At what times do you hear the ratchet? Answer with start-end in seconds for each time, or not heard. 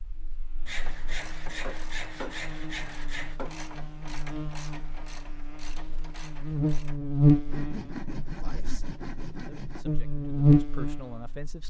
0.7-7.0.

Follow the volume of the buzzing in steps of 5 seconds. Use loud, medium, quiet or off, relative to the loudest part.
quiet, loud, loud.